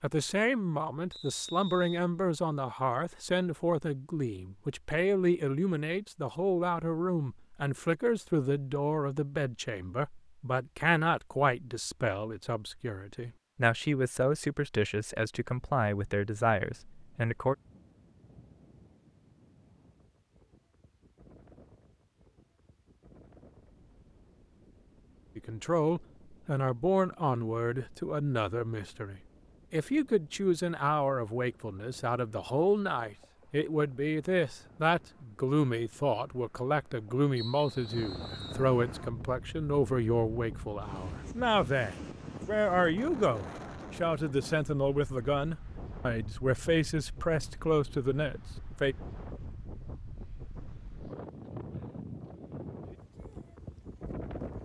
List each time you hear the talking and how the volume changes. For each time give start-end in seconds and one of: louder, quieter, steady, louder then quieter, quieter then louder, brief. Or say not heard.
0.0-17.6 steady
25.4-49.0 steady.